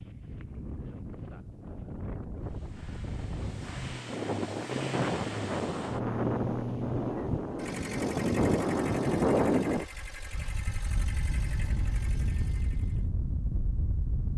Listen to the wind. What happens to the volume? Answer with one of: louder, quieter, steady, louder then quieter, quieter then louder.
louder then quieter.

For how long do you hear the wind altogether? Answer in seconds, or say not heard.
14 s.